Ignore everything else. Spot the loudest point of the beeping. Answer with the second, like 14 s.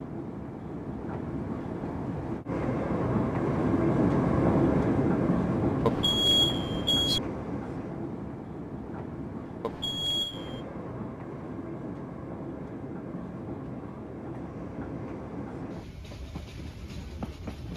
6 s.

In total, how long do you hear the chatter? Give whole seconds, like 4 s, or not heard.
not heard.